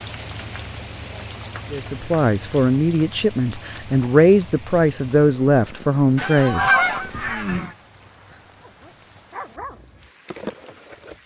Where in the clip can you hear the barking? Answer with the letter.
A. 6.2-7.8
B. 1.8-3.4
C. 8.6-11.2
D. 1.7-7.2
C.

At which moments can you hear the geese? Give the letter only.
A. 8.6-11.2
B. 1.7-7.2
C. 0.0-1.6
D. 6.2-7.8
D.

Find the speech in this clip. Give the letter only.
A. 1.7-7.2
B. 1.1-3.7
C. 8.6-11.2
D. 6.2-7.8
A.